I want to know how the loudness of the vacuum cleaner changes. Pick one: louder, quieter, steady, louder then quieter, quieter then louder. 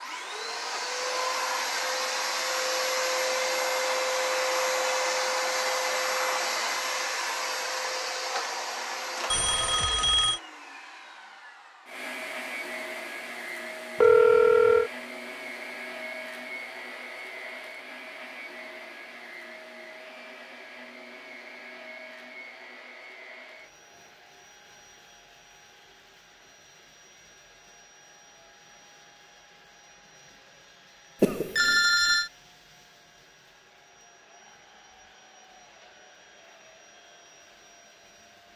quieter.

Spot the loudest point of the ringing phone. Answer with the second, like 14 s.
14 s.